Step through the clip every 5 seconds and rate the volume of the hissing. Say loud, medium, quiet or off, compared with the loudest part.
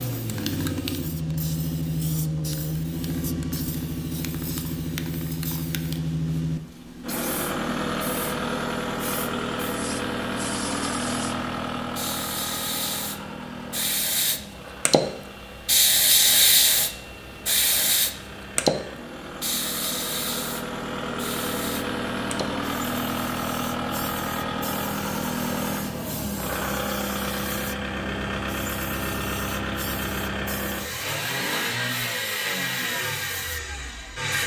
quiet, quiet, medium, loud, quiet, quiet, quiet.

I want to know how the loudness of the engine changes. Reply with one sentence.
The volume of the engine goes down, then up.